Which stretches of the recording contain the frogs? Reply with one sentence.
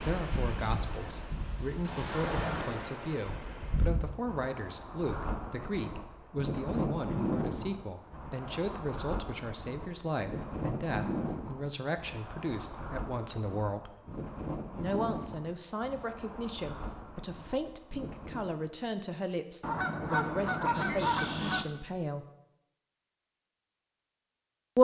The frogs can't be heard in this clip.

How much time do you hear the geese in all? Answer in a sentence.
The geese can be heard for 2 seconds in total.